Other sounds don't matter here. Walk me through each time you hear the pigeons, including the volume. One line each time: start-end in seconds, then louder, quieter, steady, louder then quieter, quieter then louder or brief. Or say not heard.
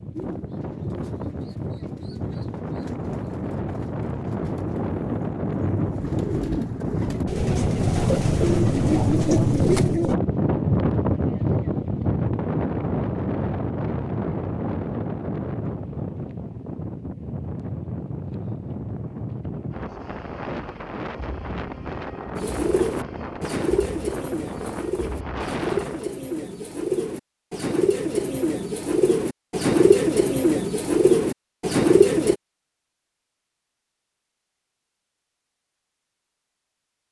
0.1-10.2 louder
22.4-32.4 louder.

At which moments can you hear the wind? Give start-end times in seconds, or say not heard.
0.0-26.1.